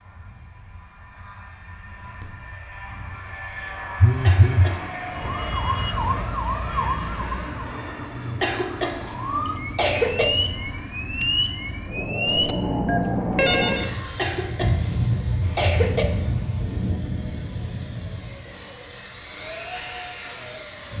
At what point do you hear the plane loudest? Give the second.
15 s.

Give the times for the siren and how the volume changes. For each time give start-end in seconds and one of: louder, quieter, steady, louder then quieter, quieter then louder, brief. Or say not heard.
5.1-13.9 quieter then louder.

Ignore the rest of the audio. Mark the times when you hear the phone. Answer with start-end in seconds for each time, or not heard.
4.0-4.8, 12.2-13.9.